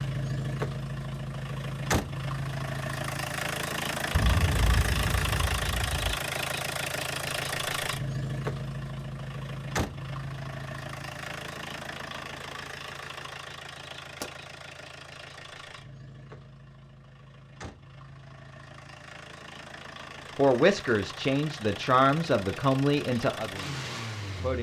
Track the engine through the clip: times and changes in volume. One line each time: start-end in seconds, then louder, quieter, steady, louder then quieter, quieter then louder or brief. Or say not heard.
0.0-24.5 quieter then louder.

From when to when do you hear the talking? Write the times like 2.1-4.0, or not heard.
20.4-24.5.